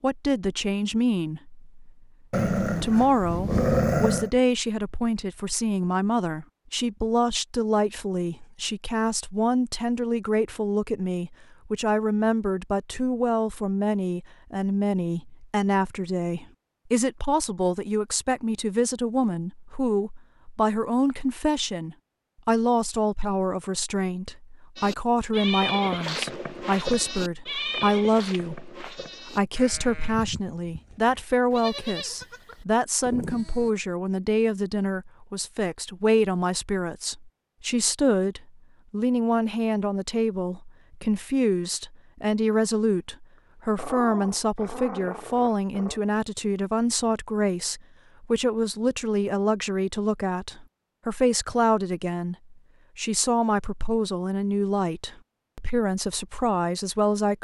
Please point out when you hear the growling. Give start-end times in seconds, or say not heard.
2.3-4.3, 43.8-46.0.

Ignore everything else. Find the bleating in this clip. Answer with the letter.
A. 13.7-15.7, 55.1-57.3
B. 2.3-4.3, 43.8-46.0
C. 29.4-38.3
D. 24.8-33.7
D.